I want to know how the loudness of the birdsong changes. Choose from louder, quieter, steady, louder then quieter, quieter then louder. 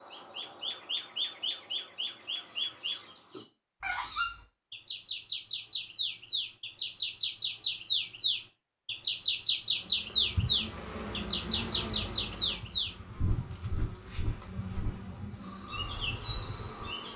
louder then quieter.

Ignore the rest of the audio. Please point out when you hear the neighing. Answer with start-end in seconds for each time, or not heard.
not heard.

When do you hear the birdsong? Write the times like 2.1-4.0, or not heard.
0.0-17.1.